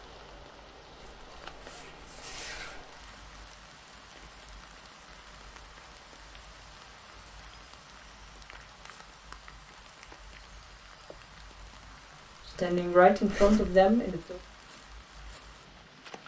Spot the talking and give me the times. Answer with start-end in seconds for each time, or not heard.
12.6-14.3.